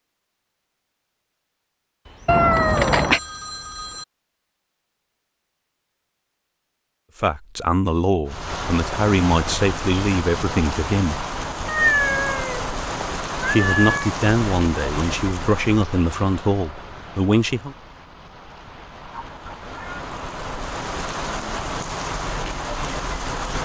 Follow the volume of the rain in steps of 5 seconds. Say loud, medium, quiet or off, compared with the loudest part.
off, loud, loud, medium, loud.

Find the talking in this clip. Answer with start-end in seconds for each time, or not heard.
7.2-11.2, 13.4-17.8.